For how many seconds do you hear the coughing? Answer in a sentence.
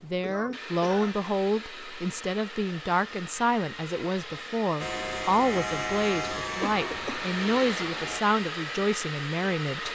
You can hear the coughing for 2 seconds altogether.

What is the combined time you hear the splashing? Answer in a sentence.
You can't hear the splashing here.